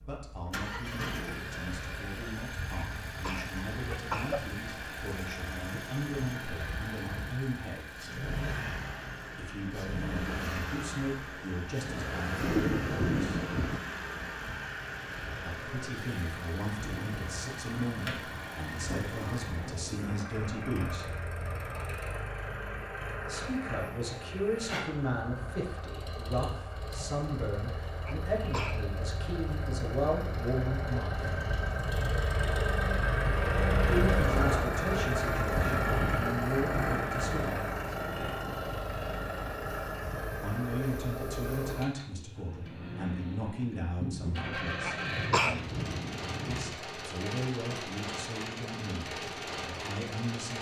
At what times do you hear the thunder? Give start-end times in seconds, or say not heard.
12.4-13.8, 18.8-20.2, 44.0-46.8.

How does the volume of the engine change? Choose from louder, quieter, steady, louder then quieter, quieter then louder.
louder then quieter.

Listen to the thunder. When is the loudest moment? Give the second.
13 s.